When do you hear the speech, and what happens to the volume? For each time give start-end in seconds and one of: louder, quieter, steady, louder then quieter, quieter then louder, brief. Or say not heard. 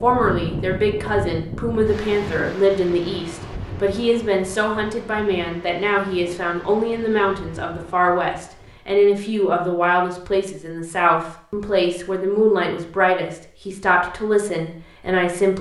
0.0-15.5 steady.